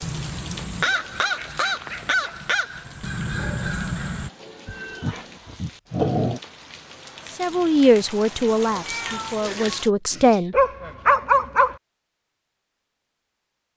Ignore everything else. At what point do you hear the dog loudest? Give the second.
11 s.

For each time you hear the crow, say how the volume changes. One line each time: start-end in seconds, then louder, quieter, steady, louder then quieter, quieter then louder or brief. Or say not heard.
0.0-4.3 steady.